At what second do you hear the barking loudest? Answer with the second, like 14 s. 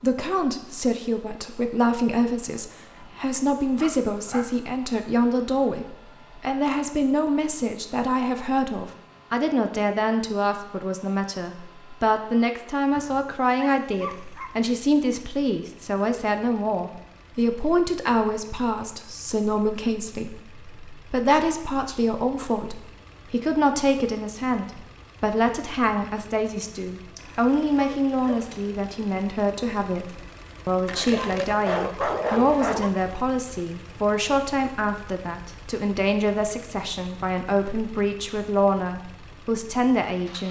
32 s.